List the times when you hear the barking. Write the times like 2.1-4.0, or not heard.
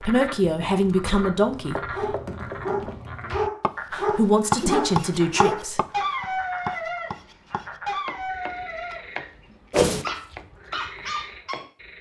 1.9-7.2, 7.8-9.1, 9.8-11.7.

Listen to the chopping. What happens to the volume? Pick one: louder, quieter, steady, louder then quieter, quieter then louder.
louder then quieter.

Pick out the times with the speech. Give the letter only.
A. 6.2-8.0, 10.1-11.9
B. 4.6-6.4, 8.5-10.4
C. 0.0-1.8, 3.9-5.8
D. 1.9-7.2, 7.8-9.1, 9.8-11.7
C.